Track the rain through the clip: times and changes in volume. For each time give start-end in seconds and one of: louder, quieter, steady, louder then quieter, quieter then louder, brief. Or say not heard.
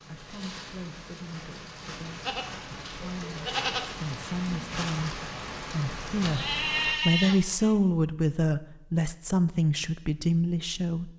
0.0-7.0 louder.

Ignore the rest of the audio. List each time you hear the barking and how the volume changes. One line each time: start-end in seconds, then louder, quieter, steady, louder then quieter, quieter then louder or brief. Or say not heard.
not heard.